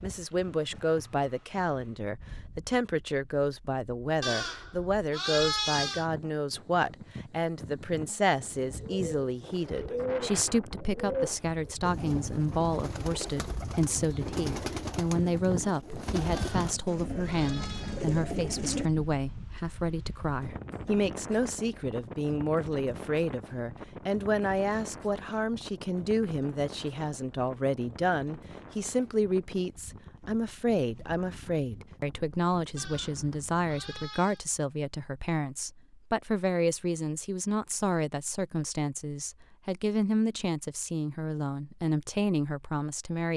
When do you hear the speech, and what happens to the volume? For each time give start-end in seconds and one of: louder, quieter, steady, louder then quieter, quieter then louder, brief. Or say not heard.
0.0-43.3 steady.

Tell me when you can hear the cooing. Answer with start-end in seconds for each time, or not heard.
8.6-18.9.